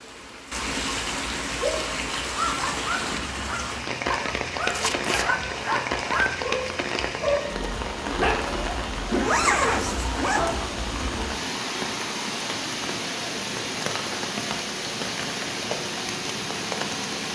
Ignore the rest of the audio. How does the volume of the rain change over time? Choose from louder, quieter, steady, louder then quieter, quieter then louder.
steady.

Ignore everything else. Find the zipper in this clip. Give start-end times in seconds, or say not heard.
4.7-5.2, 9.1-10.6.